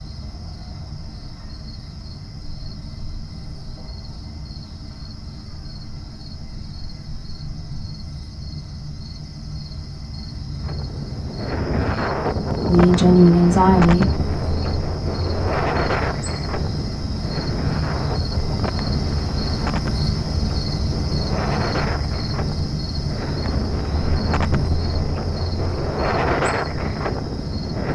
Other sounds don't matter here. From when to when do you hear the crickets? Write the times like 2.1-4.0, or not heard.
0.0-27.8.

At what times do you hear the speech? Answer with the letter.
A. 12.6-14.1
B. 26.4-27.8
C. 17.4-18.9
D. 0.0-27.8
A.